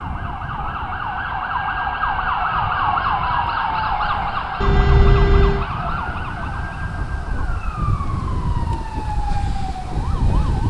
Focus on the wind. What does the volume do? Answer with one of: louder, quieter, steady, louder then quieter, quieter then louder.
louder.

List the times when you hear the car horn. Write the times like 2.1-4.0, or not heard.
4.6-5.7.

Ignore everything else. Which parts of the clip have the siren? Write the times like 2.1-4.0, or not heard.
0.0-10.6.